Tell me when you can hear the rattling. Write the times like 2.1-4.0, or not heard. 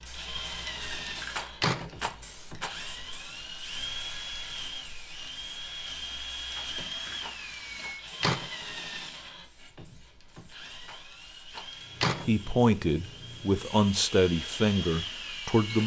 1.3-2.8, 6.5-8.0, 10.8-11.7.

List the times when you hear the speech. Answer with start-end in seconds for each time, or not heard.
12.2-15.8.